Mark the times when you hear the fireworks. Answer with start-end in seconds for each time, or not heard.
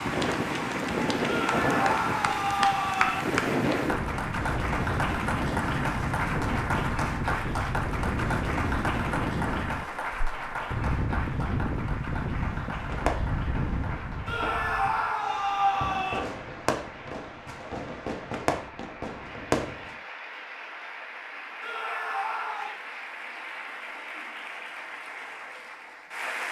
12.8-19.9.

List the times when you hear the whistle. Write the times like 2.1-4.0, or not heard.
not heard.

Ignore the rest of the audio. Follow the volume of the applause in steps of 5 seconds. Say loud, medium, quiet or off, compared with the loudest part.
loud, loud, medium, quiet, medium, medium.